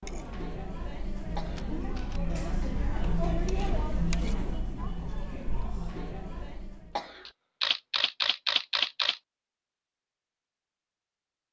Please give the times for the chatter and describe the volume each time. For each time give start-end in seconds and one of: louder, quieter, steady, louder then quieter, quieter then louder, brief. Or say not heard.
0.0-7.0 louder then quieter.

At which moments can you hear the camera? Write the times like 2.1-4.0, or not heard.
1.6-2.2, 7.2-9.2.